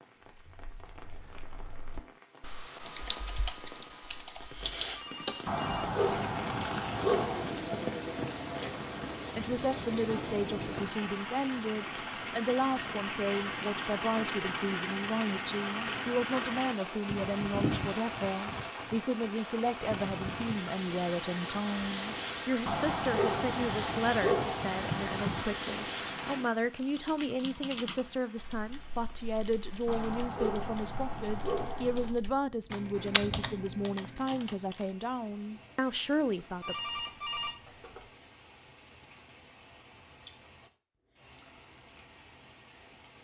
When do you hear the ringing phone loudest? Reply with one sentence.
The volume of the ringing phone peaks at 37 seconds.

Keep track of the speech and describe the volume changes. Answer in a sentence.
The volume of the speech stays about the same.